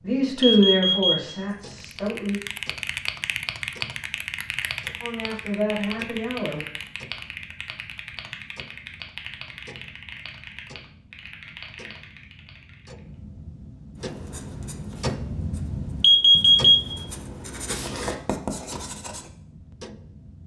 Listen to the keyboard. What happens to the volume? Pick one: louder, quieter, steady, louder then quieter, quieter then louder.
quieter.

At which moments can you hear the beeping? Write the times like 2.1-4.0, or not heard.
0.4-1.7, 16.0-17.1.